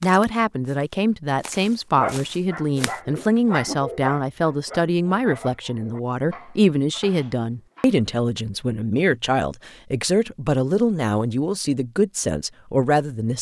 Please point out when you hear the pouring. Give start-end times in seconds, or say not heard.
not heard.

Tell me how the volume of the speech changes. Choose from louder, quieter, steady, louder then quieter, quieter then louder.
steady.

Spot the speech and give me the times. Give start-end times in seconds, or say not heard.
0.0-13.3.